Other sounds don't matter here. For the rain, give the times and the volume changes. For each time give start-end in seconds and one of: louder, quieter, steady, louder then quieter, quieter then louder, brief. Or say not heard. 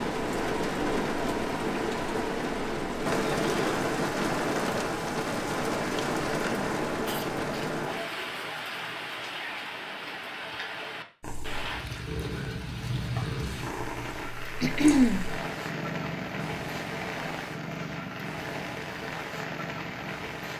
0.0-20.5 quieter.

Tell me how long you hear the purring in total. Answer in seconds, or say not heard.
9 s.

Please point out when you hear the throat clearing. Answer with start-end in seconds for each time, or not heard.
3.2-3.8, 7.0-8.3, 14.6-15.3.